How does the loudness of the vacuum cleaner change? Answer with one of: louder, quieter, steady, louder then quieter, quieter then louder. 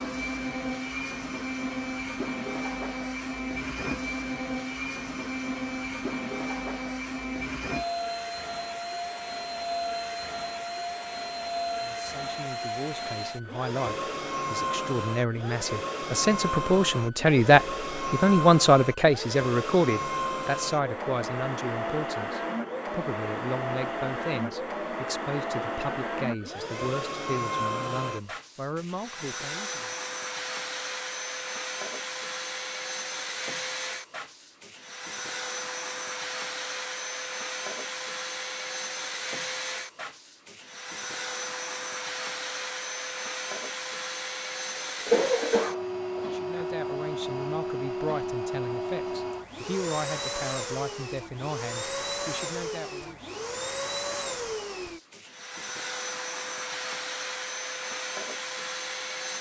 steady.